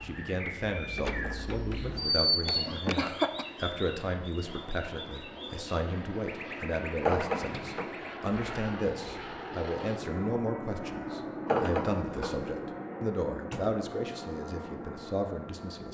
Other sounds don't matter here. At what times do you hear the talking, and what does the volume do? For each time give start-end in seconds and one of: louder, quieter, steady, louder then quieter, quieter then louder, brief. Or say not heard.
0.0-15.8 steady.